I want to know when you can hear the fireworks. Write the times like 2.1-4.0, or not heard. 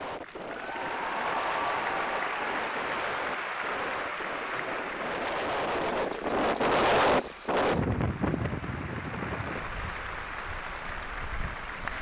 not heard.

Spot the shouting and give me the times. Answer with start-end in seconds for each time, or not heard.
not heard.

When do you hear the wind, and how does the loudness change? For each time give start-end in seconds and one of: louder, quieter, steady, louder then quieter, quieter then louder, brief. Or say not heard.
0.0-11.9 louder then quieter.